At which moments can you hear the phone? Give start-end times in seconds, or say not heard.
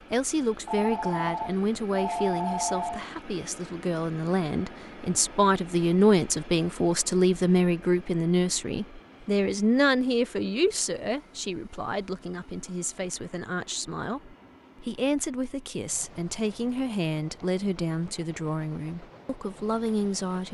0.7-3.1.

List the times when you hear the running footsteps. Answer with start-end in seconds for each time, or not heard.
not heard.